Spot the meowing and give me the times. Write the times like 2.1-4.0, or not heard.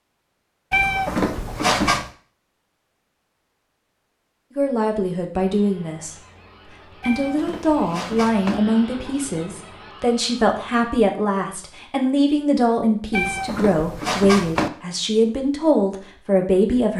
0.7-2.1, 7.0-8.6, 13.1-14.7.